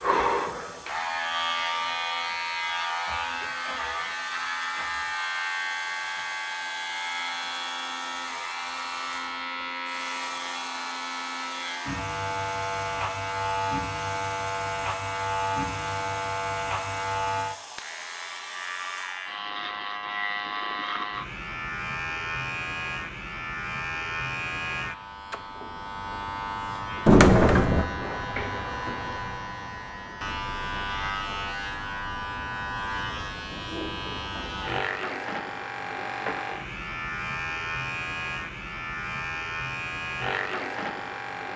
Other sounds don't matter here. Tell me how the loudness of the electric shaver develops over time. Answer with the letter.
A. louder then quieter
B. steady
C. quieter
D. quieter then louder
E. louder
B.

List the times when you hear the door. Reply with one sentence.
The door can be heard from 27.1 to 27.9 s.